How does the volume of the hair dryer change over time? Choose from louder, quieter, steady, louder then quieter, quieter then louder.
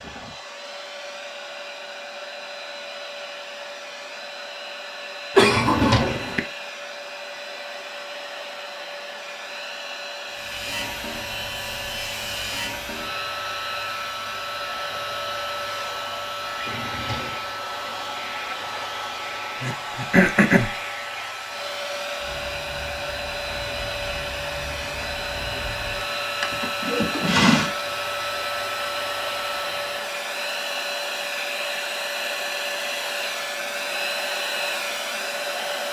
louder.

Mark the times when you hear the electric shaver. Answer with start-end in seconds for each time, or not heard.
10.2-30.1.